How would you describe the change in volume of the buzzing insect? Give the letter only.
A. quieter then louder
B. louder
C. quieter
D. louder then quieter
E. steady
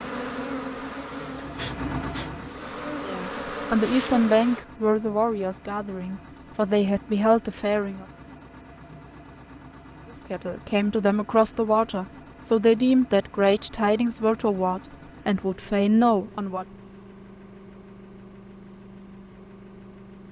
A.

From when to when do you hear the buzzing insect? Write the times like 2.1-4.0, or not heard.
0.0-4.7.